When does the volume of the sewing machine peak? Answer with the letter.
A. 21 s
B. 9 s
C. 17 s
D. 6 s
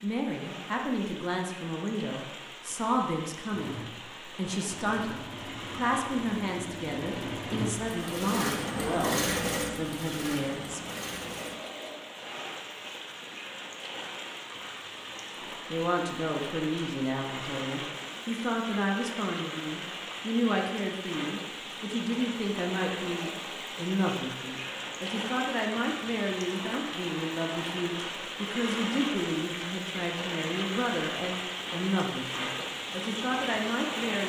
B.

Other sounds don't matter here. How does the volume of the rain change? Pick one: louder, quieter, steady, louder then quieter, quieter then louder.
louder.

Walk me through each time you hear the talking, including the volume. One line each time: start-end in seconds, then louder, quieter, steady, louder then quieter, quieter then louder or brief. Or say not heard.
0.0-10.8 steady
15.7-34.2 steady.